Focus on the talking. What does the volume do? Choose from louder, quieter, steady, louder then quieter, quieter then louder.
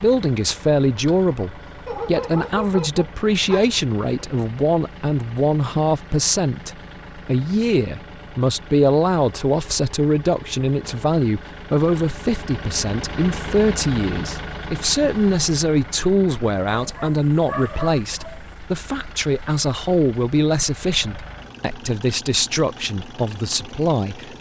steady.